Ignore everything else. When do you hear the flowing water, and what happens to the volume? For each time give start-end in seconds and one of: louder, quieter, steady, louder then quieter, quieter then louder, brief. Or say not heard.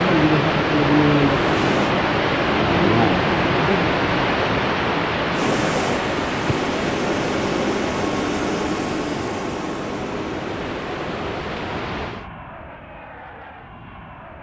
0.0-12.2 quieter.